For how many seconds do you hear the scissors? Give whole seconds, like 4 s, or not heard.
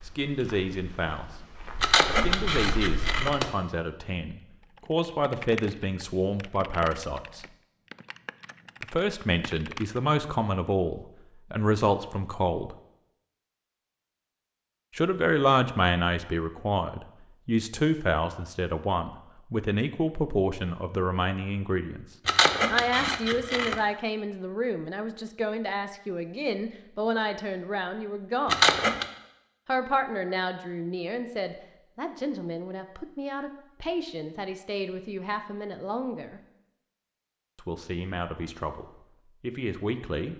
4 s.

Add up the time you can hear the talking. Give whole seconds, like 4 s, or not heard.
34 s.